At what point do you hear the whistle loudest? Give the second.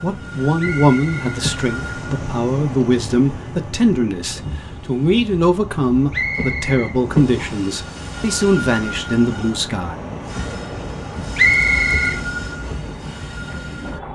12 s.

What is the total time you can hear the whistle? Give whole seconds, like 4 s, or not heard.
3 s.